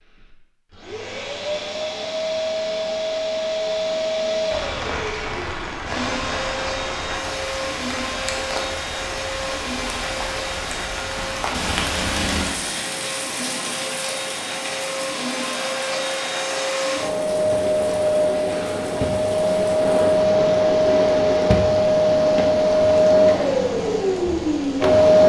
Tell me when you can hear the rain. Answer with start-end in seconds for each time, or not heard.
4.5-25.0.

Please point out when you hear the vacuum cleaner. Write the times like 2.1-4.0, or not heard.
0.0-25.2.